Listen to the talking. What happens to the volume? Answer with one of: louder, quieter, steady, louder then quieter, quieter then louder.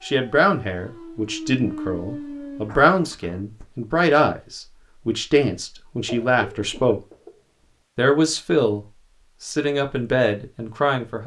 steady.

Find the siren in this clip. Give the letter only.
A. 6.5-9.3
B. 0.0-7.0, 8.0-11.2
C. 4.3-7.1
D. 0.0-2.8
D.